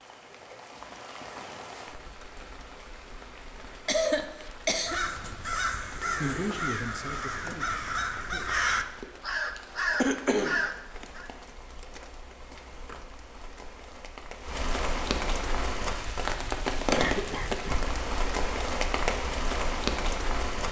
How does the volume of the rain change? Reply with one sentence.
The volume of the rain goes up.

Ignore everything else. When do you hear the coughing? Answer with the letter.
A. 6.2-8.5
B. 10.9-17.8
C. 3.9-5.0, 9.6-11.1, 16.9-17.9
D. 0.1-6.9
C.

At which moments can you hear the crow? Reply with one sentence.
The crow can be heard from 4.5 to 11.3 s.